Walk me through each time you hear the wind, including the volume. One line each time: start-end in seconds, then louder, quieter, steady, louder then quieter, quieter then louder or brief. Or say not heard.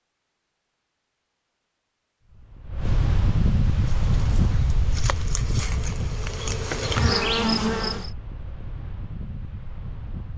2.2-10.3 quieter.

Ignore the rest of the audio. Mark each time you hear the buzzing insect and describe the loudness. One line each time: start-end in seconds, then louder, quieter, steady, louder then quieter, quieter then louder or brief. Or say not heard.
3.8-8.1 louder.